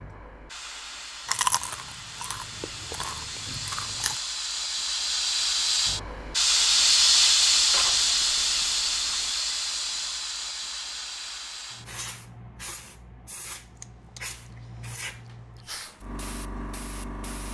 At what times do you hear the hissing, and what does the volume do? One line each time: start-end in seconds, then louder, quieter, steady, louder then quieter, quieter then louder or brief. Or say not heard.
0.0-17.5 louder then quieter.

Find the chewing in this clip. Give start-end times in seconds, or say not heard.
1.2-4.2, 7.7-9.3, 13.8-15.7.